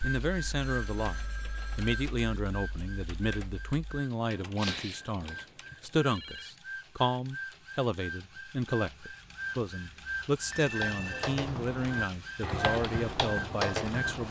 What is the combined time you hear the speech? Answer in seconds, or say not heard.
14 s.